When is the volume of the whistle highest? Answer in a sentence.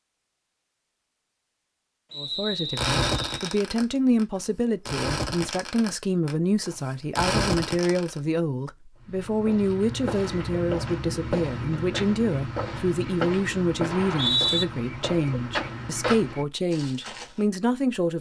The volume of the whistle peaks at 14 seconds.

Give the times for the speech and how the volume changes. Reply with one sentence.
The speech can be heard from 2.1 to 18.1 s, at a steady volume.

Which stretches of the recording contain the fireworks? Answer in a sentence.
You can hear the fireworks from 2.8 to 8.1 s.